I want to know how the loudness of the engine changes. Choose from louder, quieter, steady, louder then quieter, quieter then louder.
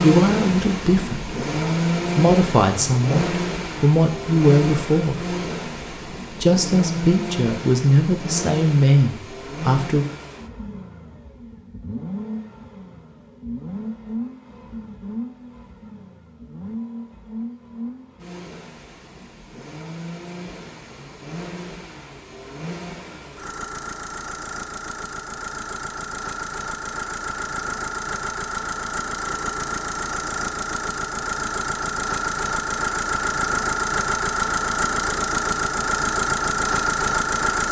quieter then louder.